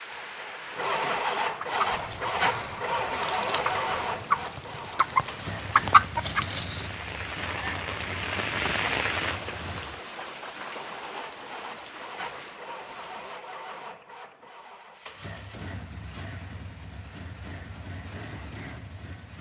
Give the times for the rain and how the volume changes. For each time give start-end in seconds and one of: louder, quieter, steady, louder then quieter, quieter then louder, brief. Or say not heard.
0.0-13.4 louder then quieter.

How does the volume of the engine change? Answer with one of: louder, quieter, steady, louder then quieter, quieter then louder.
quieter.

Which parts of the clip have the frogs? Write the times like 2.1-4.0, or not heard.
not heard.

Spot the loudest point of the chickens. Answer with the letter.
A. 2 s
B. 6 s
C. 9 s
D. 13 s
B.